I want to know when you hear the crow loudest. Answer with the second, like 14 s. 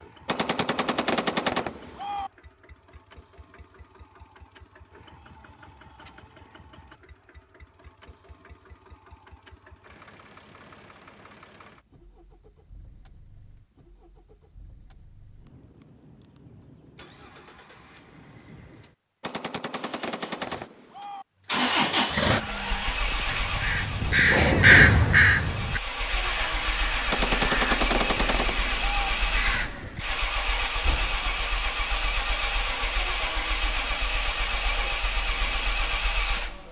25 s.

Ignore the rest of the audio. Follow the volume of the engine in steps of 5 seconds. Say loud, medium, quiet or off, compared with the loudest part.
quiet, quiet, quiet, quiet, loud, loud, loud, loud.